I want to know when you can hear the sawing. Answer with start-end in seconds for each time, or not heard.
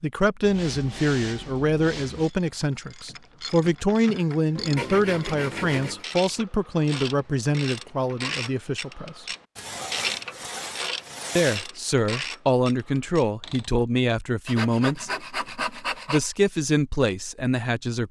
0.4-2.3, 4.5-6.0, 9.6-11.7, 14.4-16.3.